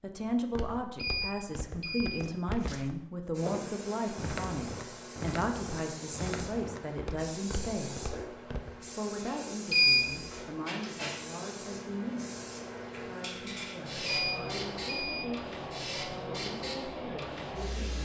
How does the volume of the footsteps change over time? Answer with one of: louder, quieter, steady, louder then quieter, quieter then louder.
louder then quieter.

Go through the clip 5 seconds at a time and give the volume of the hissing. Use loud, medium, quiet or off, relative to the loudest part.
medium, medium, loud, loud.